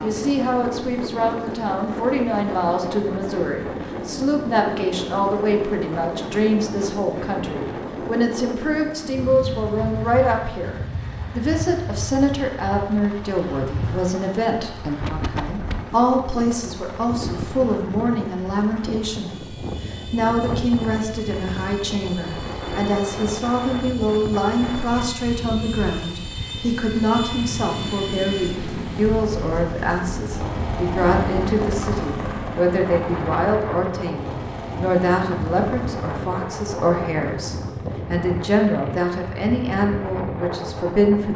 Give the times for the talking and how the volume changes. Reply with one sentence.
You can hear the talking from 0.0 to 41.3 s, at a steady volume.